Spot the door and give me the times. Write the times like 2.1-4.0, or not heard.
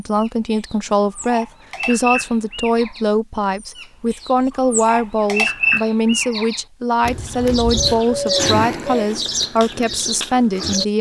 not heard.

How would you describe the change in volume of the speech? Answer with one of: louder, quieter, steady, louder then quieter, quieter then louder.
steady.